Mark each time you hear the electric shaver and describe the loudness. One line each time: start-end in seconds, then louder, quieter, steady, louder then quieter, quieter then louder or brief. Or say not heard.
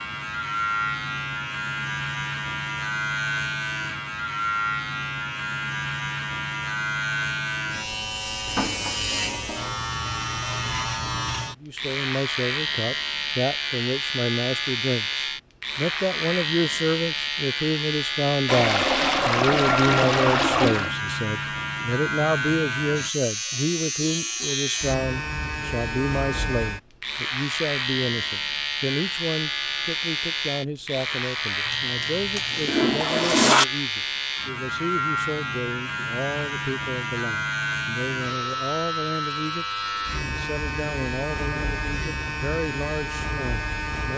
0.0-44.1 steady.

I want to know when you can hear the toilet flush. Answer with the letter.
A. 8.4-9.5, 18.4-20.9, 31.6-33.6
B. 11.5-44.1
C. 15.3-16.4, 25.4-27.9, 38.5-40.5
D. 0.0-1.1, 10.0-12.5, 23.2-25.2
A.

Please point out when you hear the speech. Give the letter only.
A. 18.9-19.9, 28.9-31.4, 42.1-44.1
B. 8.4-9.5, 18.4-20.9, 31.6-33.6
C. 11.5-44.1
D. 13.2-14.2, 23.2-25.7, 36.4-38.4
C.